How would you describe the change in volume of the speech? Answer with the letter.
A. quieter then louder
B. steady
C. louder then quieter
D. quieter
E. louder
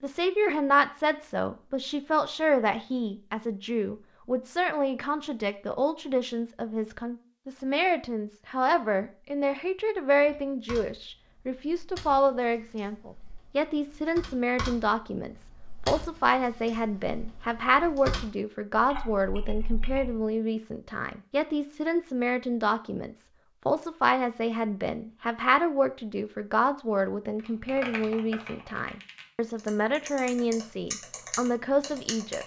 B.